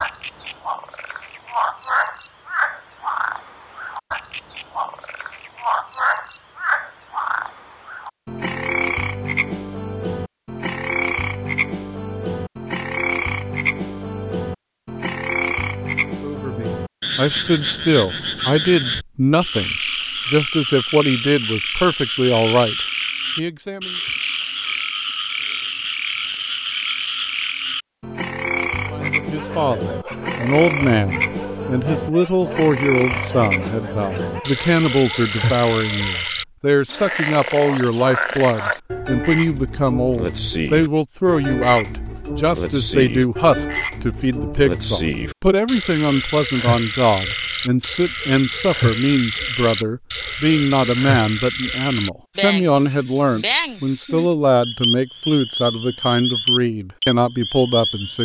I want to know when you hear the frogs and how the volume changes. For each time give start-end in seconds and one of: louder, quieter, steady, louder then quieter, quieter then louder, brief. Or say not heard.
0.0-58.1 steady.